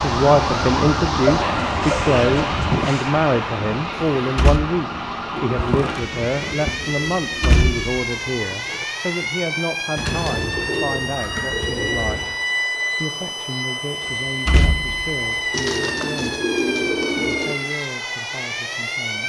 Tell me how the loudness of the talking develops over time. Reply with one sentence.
The volume of the talking goes down.